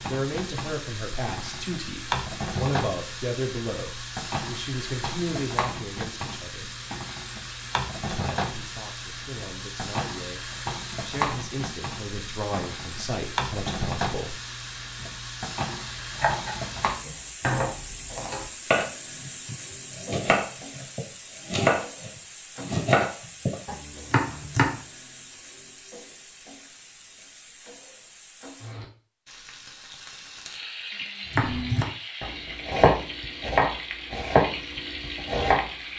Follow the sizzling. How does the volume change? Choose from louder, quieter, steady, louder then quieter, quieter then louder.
quieter then louder.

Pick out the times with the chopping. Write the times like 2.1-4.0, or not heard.
16.1-24.8, 31.4-35.6.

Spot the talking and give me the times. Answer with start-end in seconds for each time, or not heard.
0.1-6.8, 8.1-14.3.